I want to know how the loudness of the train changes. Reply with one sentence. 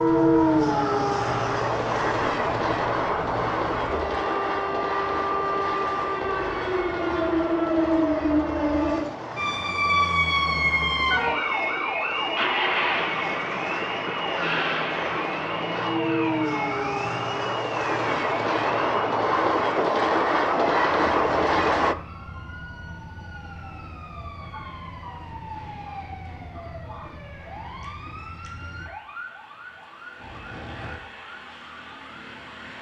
The loudness of the train goes down, then up.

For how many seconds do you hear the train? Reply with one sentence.
You can hear the train for 22 seconds altogether.